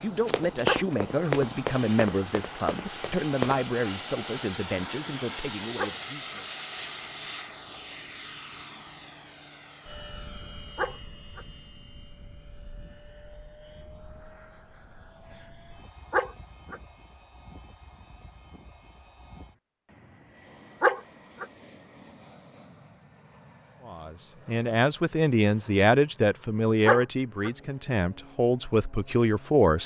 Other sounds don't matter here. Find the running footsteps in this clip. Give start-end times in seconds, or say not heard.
0.0-3.6.